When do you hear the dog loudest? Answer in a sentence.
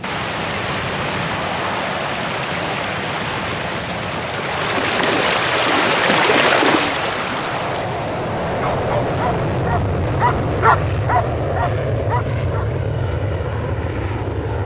The loudest moment of the dog is at 11 seconds.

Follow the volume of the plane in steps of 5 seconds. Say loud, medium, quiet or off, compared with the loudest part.
medium, loud, loud.